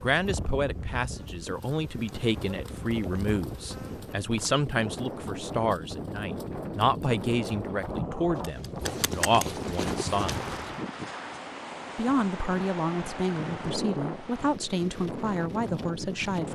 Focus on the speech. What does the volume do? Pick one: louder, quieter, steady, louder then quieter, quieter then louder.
steady.